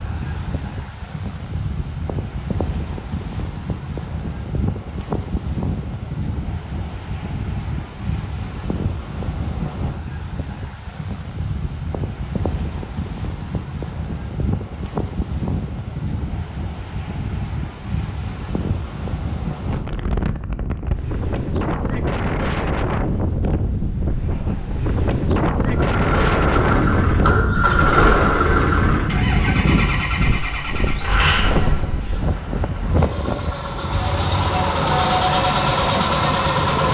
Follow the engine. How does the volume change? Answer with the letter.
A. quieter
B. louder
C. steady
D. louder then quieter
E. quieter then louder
E.